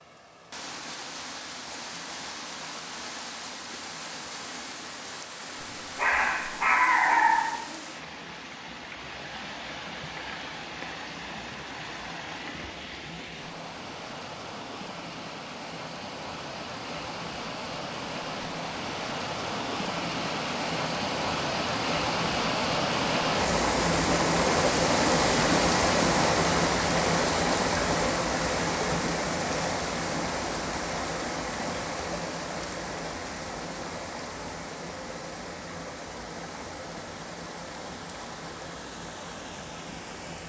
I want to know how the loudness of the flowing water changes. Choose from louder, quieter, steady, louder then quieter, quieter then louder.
louder then quieter.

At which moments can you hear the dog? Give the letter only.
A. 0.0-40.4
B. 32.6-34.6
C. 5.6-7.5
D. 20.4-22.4
C.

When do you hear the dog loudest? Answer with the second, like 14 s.
7 s.